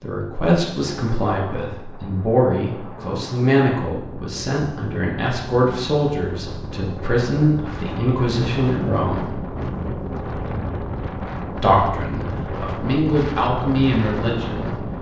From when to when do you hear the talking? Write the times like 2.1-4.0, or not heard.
0.0-9.4, 11.6-14.8.